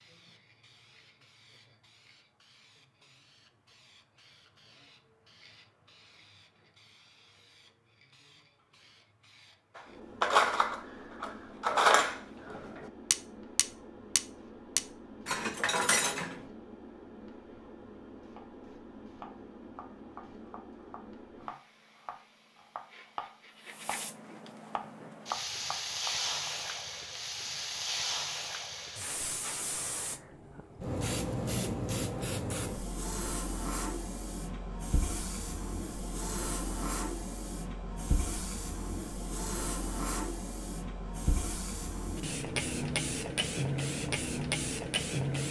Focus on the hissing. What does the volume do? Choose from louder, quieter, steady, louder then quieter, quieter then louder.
louder.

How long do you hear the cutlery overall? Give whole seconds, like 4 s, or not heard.
7 s.